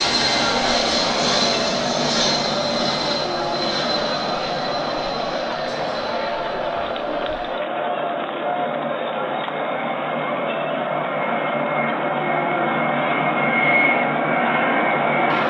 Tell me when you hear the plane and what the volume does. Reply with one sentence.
You can hear the plane from 0.0 to 15.4 s, getting quieter then louder.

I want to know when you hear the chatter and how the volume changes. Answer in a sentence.
The chatter can be heard from 0.2 to 15.4 s, at a steady volume.